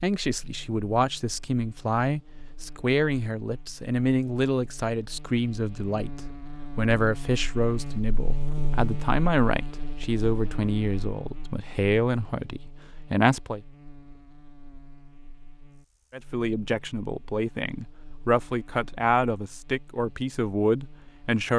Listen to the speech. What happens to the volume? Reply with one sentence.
The volume of the speech stays about the same.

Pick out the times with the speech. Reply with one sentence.
You can hear the speech from 0.0 to 13.6 s and from 16.1 to 21.5 s.